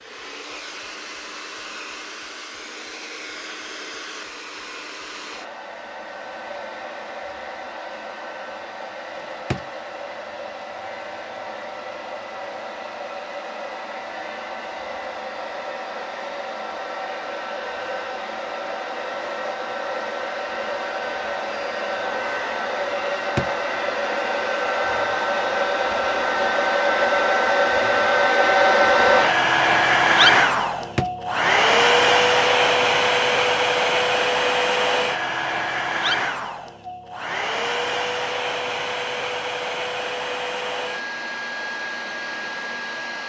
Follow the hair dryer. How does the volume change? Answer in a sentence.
The loudness of the hair dryer goes up, then down.